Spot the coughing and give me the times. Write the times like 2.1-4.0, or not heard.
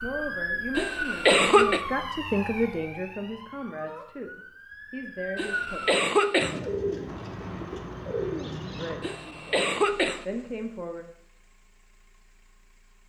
0.8-1.8, 5.3-6.6, 9.0-10.2.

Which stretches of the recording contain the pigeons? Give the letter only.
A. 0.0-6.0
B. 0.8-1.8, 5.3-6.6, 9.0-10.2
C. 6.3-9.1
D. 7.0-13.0
C.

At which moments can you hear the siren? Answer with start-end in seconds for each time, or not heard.
0.0-6.0.